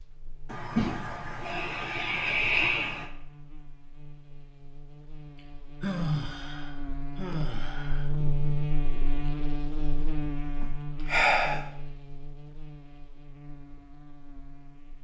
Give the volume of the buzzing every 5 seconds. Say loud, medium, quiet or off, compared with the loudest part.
quiet, loud, medium.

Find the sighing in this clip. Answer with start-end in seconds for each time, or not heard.
0.5-3.1, 5.3-8.1, 10.6-11.7.